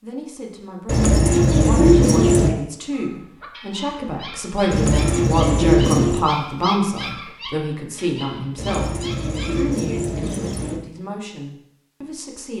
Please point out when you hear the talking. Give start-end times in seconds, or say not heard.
0.0-12.5.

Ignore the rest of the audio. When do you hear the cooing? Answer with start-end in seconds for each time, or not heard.
0.8-2.5, 4.7-6.2, 8.6-10.8.